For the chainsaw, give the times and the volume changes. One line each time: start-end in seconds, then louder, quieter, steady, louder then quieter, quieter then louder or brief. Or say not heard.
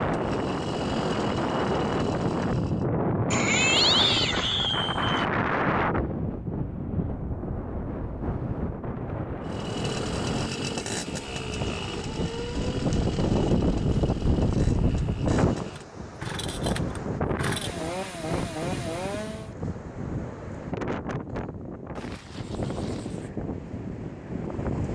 0.0-2.9 brief
9.4-19.6 quieter then louder.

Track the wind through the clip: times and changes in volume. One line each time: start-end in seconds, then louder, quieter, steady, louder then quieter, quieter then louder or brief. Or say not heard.
0.0-24.8 quieter.